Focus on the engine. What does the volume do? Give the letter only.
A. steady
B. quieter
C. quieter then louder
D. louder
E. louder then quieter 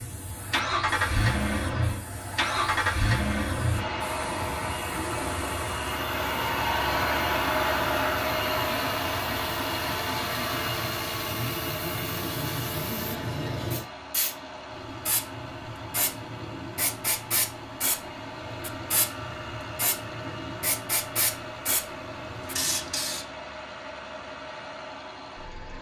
B.